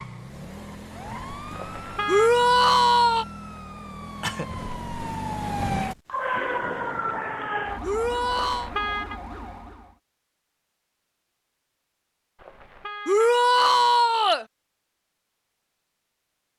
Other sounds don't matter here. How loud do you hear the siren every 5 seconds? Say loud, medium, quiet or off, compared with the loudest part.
medium, loud, off, off.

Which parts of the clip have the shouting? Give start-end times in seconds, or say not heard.
2.0-3.2, 7.8-8.7, 13.1-14.4.